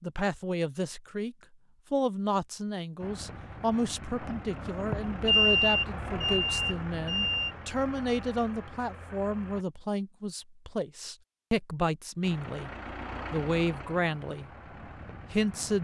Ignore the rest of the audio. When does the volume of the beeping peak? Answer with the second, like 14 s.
5 s.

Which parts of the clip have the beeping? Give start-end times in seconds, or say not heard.
4.9-7.5.